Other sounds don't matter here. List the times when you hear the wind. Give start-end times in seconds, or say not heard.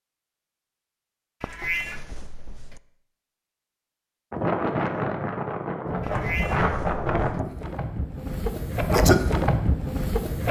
4.3-10.4.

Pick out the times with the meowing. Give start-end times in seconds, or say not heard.
1.4-2.8, 6.0-7.4.